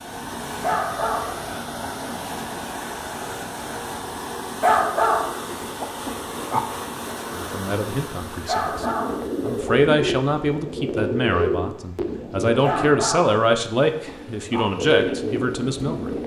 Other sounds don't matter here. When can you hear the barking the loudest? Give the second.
5 s.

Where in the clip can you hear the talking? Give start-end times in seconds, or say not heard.
7.3-16.1.